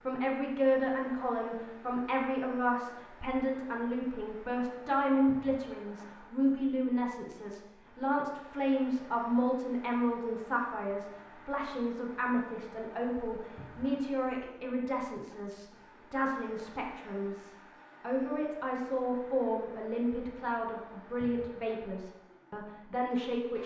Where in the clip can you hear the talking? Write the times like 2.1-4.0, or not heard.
0.0-23.6.